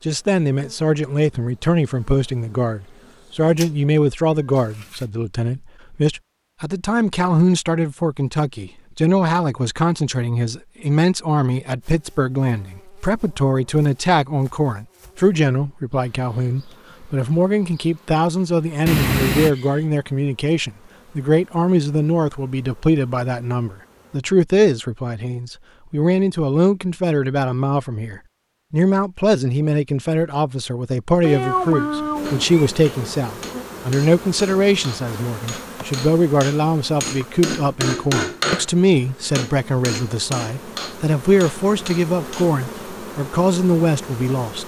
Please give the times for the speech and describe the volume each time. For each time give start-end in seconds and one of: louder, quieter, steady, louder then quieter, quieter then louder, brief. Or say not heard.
0.0-44.6 steady.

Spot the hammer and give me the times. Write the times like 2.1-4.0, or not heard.
32.2-38.7, 39.4-42.5.